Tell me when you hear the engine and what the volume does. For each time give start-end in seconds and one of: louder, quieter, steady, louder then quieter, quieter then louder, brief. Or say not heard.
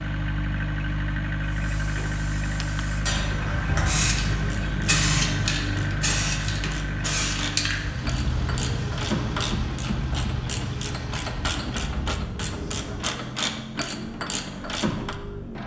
0.0-15.6 quieter.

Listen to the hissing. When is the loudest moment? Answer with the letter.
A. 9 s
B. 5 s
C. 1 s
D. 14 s
B.